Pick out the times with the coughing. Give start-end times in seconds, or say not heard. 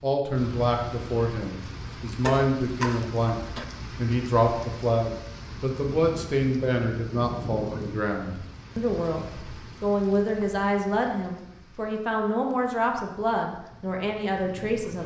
1.6-3.6.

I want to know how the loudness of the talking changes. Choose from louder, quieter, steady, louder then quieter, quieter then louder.
steady.